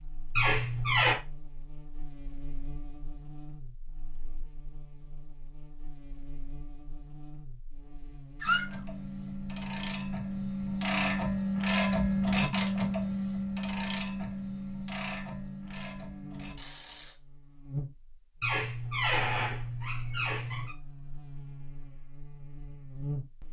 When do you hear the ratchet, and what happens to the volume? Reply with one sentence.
The ratchet can be heard from 8.4 to 17.1 s, getting louder then quieter.